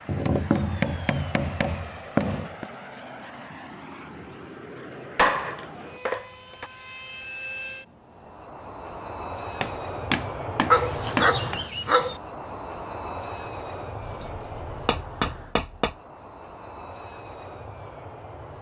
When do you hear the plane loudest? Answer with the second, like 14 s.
11 s.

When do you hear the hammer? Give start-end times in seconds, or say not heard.
0.1-2.6, 5.2-6.7, 9.6-11.6, 14.0-15.9.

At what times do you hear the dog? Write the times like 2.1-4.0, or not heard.
10.7-12.2.